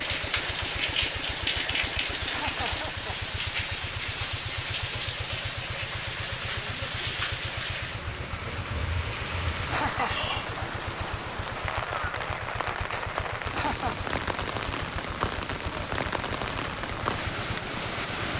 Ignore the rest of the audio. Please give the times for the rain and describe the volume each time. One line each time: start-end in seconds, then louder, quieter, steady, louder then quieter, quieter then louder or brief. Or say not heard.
0.0-18.3 steady.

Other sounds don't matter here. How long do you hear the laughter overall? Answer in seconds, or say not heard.
2 s.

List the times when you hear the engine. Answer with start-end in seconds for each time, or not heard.
0.0-18.3.